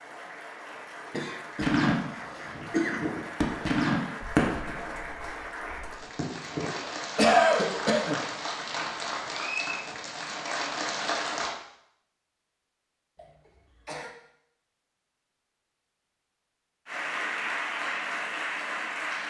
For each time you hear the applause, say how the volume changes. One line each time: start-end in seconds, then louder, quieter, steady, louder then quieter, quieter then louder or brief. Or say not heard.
0.0-11.6 louder
16.9-19.2 brief.